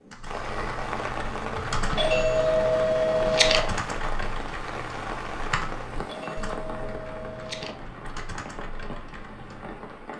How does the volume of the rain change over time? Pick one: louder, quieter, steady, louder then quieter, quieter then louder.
quieter.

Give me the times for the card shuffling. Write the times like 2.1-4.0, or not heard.
not heard.